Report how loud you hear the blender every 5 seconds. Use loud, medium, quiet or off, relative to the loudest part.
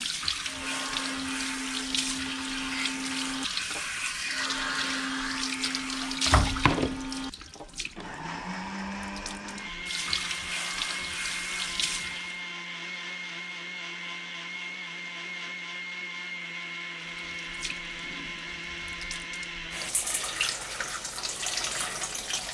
loud, loud, loud, loud, off.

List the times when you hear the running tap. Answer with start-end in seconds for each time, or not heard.
0.0-12.4, 17.3-22.4.